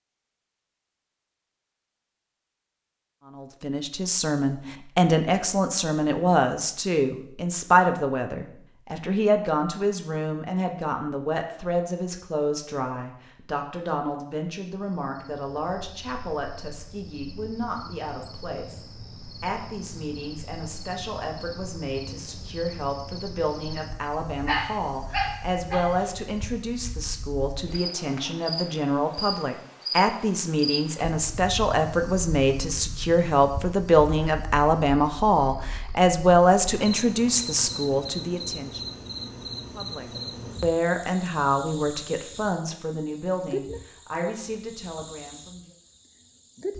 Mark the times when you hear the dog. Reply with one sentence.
You can hear the dog from 24.4 to 26.1 s.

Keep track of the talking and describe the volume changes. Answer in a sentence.
The volume of the talking goes down, then up.